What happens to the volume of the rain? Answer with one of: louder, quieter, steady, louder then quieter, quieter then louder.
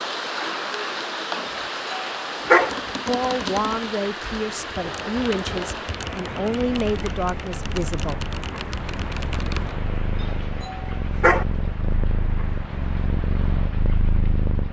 quieter.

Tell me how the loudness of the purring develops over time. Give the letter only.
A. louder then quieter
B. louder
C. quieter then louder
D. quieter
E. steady
B.